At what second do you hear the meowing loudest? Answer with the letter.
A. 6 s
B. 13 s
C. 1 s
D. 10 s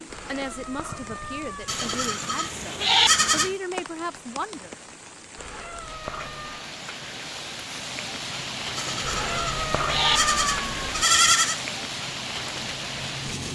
D.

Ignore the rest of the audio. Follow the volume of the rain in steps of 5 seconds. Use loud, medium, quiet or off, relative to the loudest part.
medium, loud, loud.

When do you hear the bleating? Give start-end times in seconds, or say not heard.
1.6-3.5, 8.8-11.6.